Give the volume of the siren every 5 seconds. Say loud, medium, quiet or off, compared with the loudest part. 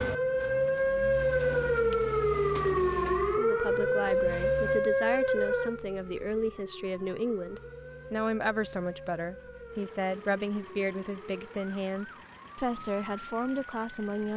loud, medium, quiet.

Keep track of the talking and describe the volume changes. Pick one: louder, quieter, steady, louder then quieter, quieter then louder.
steady.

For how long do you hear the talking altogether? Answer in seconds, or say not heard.
11 s.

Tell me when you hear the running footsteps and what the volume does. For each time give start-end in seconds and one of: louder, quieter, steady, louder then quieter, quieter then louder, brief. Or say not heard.
not heard.